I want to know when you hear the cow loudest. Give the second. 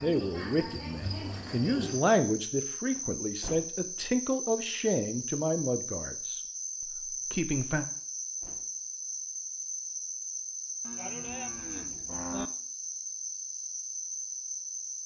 12 s.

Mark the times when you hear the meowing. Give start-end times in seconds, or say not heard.
not heard.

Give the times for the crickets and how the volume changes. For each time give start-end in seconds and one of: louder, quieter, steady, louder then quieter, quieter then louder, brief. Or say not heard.
0.0-15.0 steady.